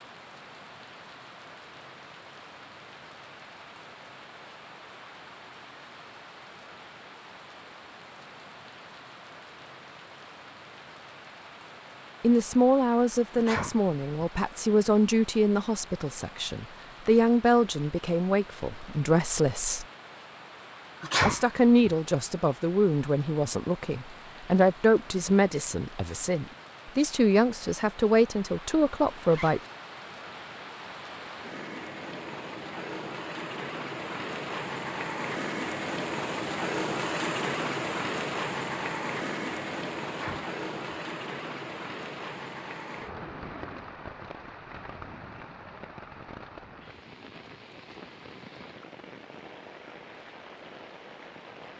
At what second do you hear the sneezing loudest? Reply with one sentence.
The loudest moment of the sneezing is at 21 seconds.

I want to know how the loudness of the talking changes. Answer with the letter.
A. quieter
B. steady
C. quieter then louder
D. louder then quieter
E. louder
B.